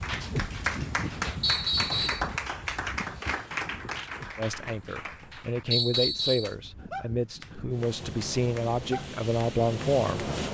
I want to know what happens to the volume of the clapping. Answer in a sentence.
The volume of the clapping goes down.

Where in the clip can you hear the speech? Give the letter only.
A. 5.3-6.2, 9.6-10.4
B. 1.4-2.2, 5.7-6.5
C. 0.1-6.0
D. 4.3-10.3
D.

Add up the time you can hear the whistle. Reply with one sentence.
The whistle can be heard for 2 seconds in total.